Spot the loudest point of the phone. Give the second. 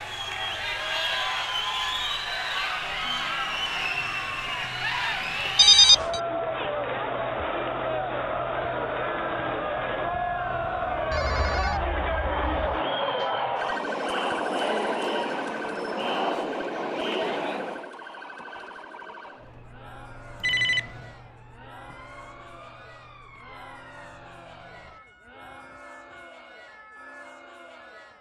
6 s.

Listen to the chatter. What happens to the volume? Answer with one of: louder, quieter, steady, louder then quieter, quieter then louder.
quieter.